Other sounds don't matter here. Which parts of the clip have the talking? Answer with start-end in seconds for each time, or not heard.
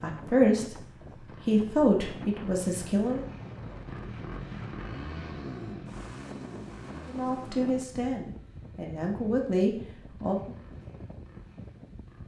0.0-0.8, 1.4-3.2, 7.0-10.6.